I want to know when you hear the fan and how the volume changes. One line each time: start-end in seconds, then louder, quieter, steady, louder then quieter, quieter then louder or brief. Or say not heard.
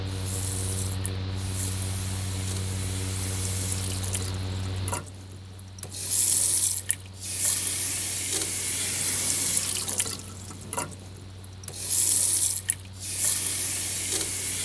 0.0-14.6 quieter.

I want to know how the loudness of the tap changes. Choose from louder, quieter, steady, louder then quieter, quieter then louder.
louder.